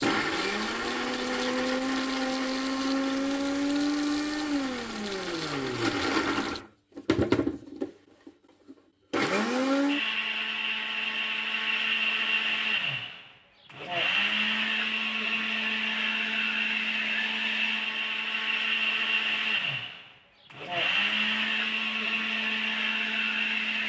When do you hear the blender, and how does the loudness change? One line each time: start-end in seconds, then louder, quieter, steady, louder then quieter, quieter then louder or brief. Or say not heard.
0.0-23.8 steady.